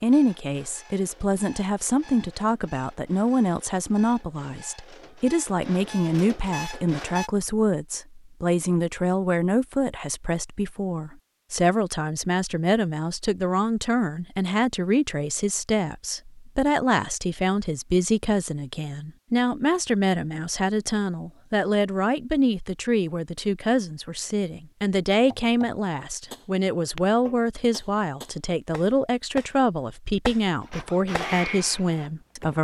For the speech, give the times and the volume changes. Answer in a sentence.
You can hear the speech from 0.0 to 32.5 s, at a steady volume.